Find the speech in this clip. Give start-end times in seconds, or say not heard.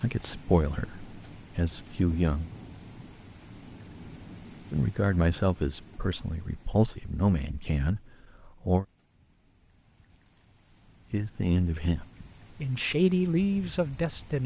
0.0-2.5, 4.7-8.8, 11.1-14.4.